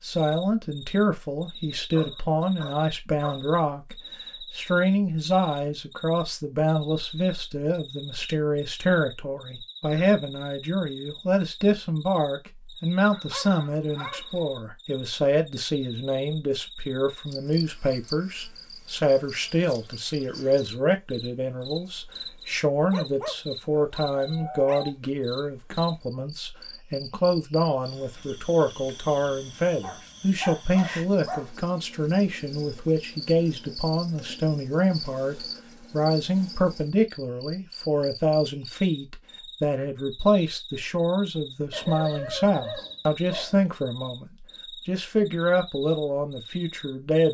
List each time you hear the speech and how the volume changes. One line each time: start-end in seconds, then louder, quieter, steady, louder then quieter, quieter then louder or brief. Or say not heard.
0.0-47.3 steady.